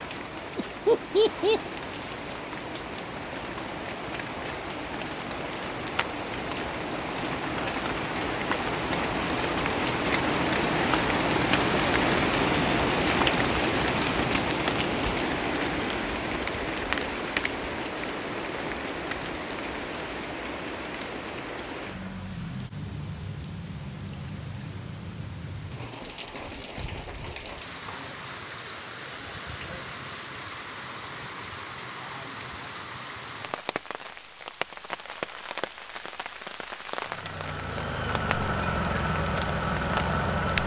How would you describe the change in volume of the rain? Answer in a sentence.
The loudness of the rain goes up, then down.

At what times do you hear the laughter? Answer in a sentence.
The laughter can be heard from 0.6 to 1.7 s.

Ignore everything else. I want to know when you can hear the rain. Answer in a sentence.
The rain can be heard from 0.0 to 40.6 s.